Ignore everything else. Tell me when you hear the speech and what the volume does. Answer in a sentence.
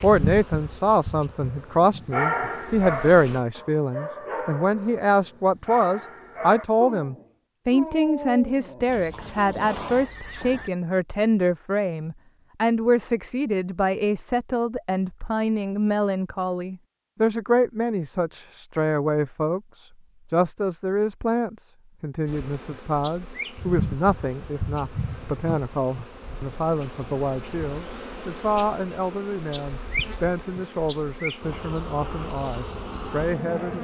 You can hear the speech from 0.0 to 33.7 s, getting quieter.